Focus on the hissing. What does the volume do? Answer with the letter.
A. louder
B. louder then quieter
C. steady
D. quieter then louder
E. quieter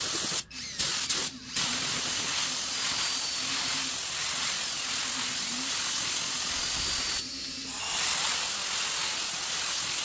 C.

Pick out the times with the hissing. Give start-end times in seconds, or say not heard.
0.0-9.9.